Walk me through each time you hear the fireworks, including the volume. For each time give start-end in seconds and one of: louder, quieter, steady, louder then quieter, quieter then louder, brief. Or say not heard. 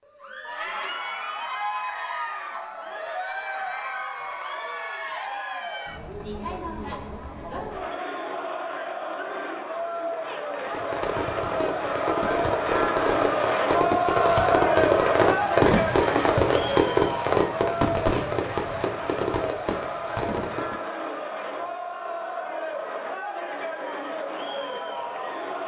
10.7-20.8 louder then quieter.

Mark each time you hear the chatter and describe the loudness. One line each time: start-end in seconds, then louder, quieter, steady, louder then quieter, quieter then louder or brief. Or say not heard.
0.0-25.6 louder then quieter.